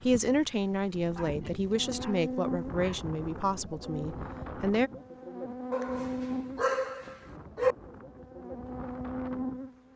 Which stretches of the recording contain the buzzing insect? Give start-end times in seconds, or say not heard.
1.6-9.9.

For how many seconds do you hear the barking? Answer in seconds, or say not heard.
4 s.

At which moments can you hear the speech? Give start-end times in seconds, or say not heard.
0.0-4.9.